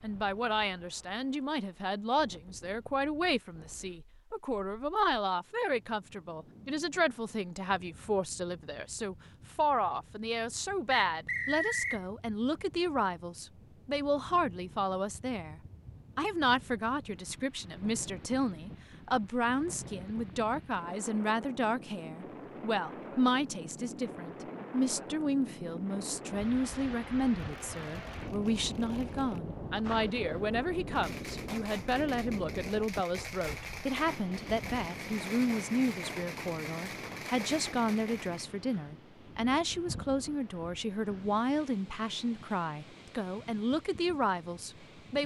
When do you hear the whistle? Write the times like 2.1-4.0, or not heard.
10.9-12.0.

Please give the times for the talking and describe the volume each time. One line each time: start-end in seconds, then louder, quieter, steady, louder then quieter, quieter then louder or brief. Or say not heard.
0.0-45.2 steady.